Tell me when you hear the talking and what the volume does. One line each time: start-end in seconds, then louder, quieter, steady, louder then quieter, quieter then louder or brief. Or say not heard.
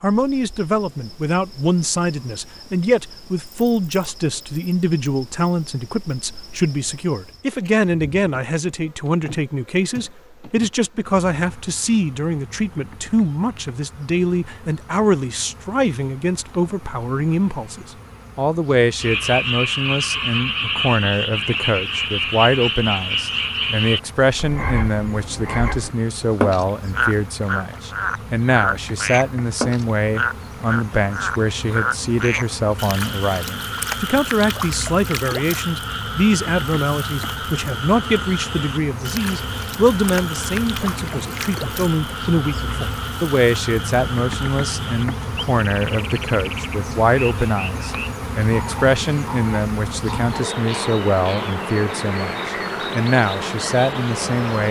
0.0-54.6 steady.